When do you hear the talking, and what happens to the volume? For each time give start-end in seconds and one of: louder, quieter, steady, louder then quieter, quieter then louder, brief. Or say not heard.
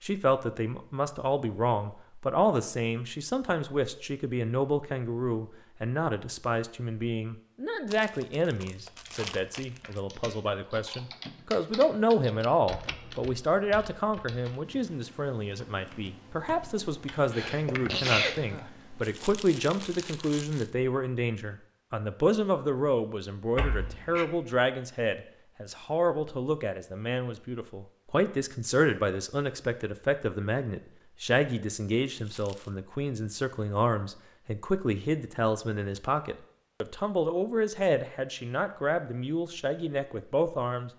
0.0-40.9 steady.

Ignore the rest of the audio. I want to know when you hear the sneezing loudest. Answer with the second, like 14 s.
18 s.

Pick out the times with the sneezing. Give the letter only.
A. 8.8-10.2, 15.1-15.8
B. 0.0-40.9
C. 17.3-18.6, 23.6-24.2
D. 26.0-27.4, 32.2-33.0
C.